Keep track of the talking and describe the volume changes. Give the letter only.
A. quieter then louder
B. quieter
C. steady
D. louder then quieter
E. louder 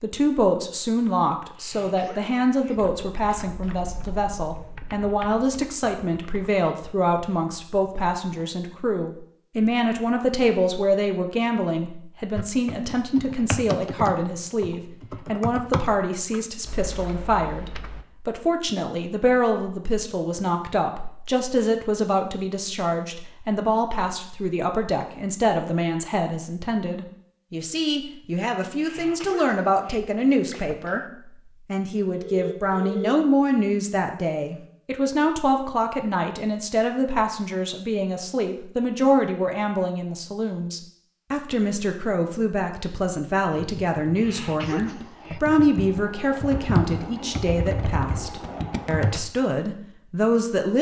C.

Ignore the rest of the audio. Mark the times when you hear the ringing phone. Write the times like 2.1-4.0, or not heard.
32.1-33.1.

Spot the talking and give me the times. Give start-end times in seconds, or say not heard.
0.0-31.0, 31.6-50.7.